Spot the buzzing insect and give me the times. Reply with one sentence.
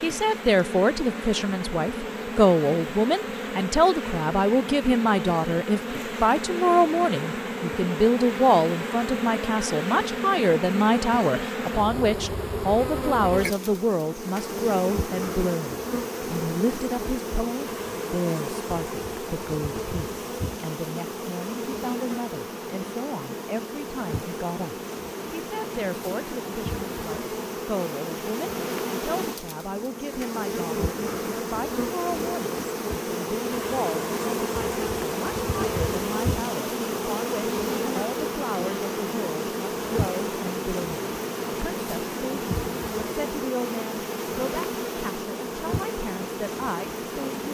The buzzing insect can be heard from 0.0 to 47.4 s.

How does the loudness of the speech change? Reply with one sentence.
The volume of the speech goes down.